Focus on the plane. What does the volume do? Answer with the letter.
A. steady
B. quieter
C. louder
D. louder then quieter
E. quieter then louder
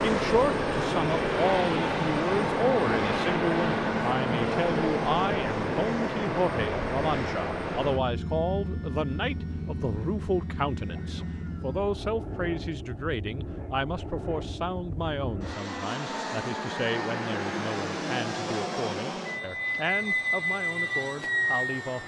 E.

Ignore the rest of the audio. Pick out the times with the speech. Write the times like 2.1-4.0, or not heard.
0.0-22.0.